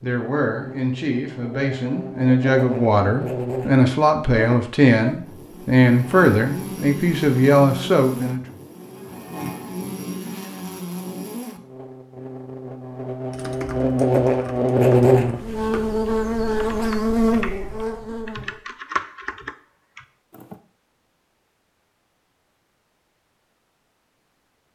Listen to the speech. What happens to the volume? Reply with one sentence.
The volume of the speech goes up.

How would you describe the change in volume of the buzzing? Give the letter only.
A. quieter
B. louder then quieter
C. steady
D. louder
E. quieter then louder
D.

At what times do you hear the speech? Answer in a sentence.
The speech can be heard from 0.0 to 8.4 s.